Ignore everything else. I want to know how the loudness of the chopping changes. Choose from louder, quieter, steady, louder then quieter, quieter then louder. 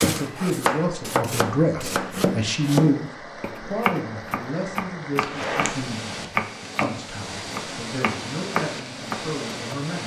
steady.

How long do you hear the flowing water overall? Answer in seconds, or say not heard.
10 s.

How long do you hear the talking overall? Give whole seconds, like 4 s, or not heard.
10 s.